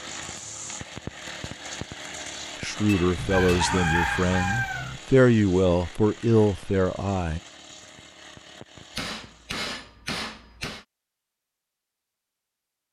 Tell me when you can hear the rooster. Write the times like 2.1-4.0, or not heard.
3.1-5.0.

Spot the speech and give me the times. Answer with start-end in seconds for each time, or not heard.
2.6-7.4.